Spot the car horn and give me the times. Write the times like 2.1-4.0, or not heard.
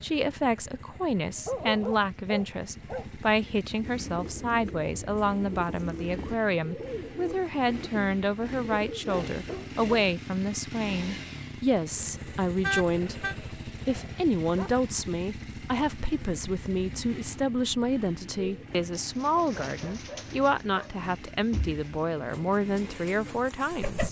12.6-13.3.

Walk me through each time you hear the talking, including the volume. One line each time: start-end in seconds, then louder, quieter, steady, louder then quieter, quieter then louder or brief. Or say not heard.
0.0-24.0 steady.